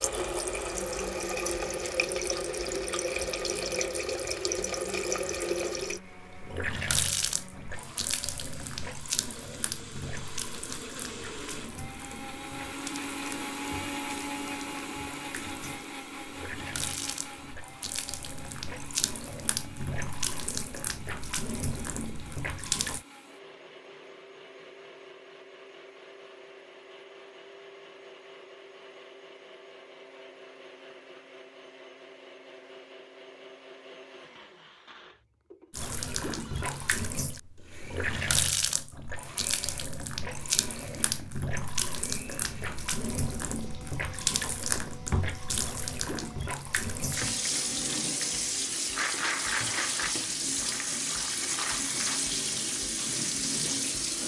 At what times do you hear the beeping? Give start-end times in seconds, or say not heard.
not heard.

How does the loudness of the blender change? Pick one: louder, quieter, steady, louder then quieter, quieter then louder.
louder then quieter.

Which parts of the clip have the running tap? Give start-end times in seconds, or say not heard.
0.0-23.1, 35.7-54.2.